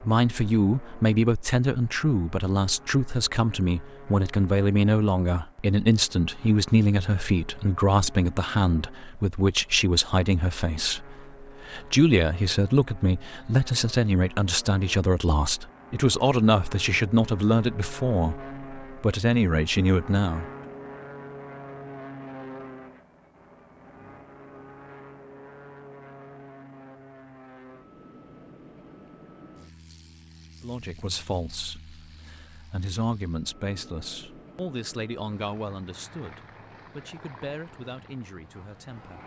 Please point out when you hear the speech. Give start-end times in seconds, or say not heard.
0.0-20.4, 30.6-39.2.